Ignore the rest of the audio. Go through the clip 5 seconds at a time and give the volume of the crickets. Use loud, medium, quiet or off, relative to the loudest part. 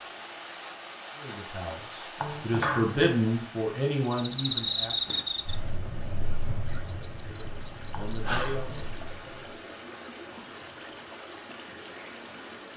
loud, loud, off.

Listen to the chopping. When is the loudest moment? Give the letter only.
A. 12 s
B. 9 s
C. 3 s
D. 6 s
C.